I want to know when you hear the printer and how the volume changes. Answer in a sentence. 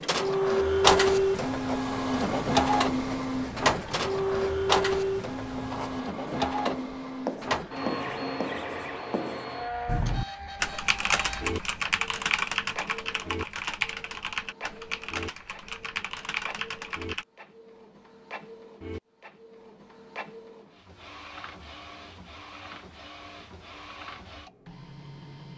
The printer can be heard from 0.0 to 25.5 s, getting quieter.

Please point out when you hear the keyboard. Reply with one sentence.
You can hear the keyboard from 9.8 to 17.2 s.